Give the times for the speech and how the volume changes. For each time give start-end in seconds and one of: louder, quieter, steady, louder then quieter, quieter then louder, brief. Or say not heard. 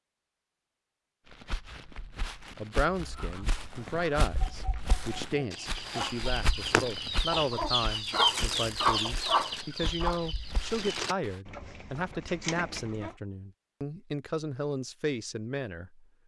2.5-16.1 steady.